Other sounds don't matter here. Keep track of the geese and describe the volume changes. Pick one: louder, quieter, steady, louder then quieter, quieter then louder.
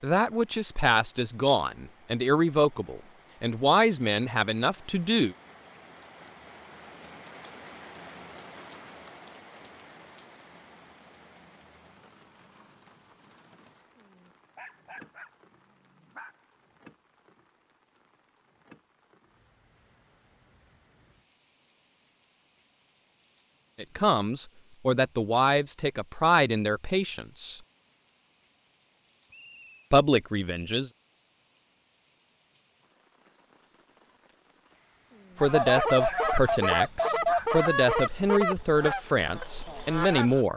quieter.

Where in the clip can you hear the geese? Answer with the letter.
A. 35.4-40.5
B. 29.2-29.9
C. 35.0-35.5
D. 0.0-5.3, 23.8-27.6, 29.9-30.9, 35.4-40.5
A.